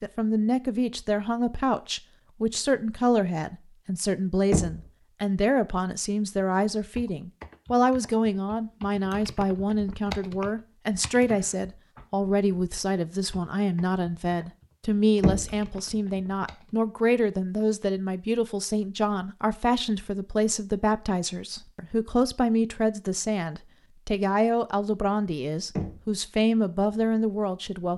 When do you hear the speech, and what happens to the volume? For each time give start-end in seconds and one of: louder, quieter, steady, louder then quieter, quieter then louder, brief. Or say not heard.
0.0-27.9 steady.